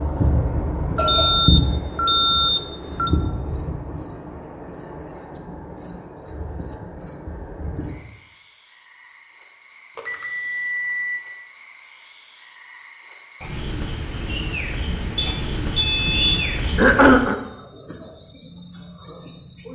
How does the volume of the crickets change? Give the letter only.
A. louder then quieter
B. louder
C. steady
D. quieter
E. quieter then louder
E.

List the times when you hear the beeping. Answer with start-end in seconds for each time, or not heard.
0.9-3.1, 9.9-11.2, 15.2-16.6.